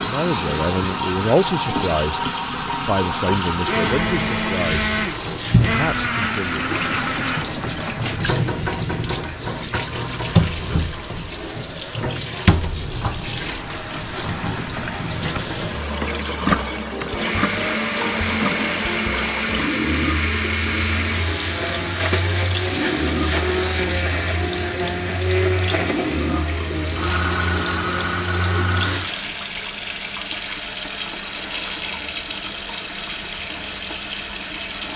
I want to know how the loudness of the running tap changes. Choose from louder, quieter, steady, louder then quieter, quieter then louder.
steady.